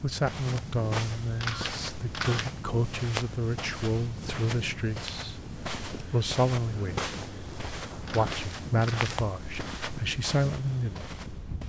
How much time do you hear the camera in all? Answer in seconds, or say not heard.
3 s.